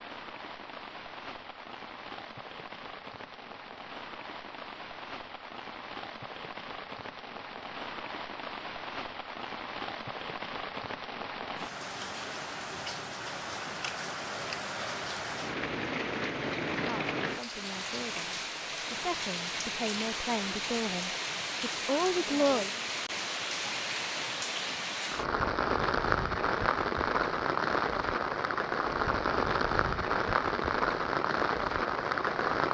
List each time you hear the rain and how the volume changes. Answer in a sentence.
The rain can be heard from 0.0 to 32.6 s, getting louder.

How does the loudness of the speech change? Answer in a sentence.
The volume of the speech goes up.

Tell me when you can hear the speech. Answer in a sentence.
You can hear the speech from 16.8 to 22.7 s.